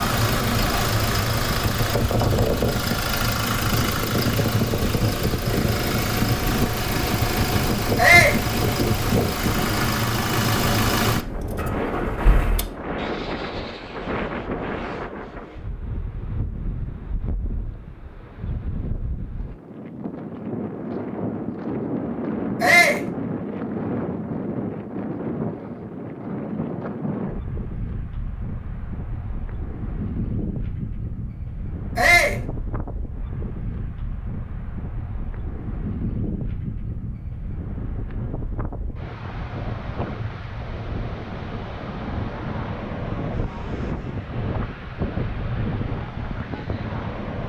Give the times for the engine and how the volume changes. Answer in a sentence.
The engine can be heard from 0.0 to 12.8 s, at a steady volume.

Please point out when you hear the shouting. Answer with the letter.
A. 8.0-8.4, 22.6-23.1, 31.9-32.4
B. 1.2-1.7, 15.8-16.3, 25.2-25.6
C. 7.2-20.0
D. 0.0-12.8
A.